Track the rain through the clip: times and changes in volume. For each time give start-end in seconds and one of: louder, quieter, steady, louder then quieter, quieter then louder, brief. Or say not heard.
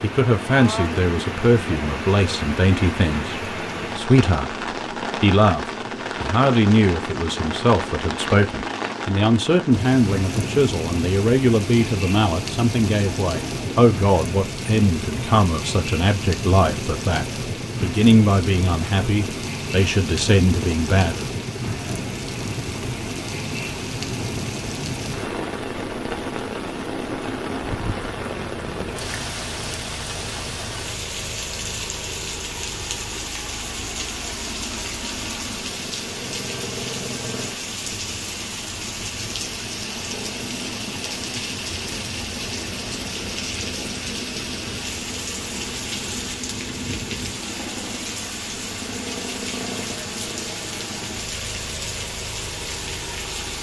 0.0-53.5 steady.